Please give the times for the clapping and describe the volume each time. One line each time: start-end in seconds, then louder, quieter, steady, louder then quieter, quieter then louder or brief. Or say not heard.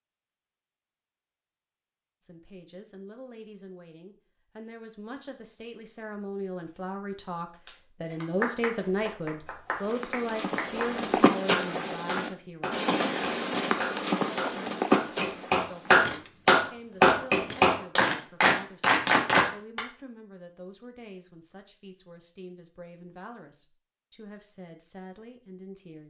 7.7-19.8 louder.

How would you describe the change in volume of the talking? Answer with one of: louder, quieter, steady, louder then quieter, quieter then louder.
louder then quieter.